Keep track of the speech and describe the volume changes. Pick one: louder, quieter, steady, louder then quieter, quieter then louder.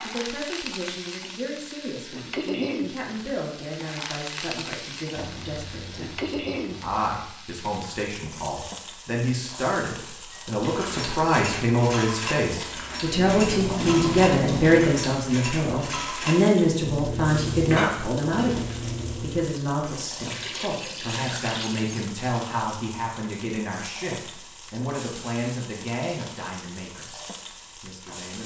louder then quieter.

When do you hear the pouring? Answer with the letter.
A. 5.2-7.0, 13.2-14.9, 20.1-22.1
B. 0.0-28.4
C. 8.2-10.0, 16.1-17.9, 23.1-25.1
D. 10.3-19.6
A.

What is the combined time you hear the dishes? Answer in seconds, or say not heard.
9 s.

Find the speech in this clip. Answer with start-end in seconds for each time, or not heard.
0.0-28.4.